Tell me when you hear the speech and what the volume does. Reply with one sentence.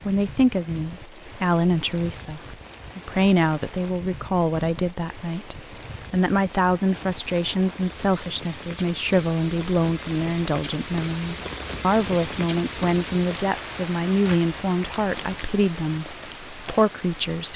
You can hear the speech from 0.1 to 17.5 s, at a steady volume.